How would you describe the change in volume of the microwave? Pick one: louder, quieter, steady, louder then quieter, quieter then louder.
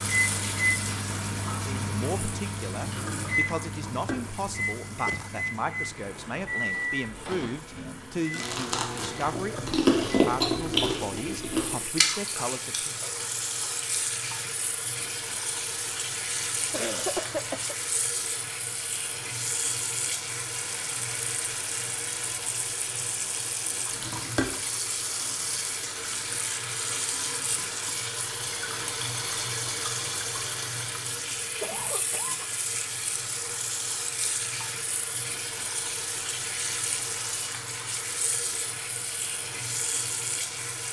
quieter.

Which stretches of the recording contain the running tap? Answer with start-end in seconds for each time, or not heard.
0.0-40.8.